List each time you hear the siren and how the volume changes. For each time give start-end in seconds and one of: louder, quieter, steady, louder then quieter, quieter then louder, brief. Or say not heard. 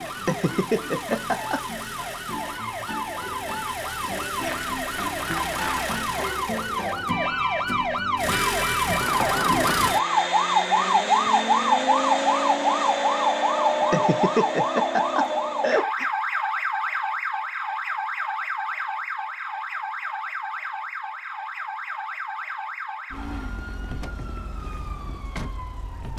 0.0-26.1 louder then quieter.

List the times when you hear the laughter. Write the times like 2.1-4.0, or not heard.
0.2-1.6, 13.9-16.1.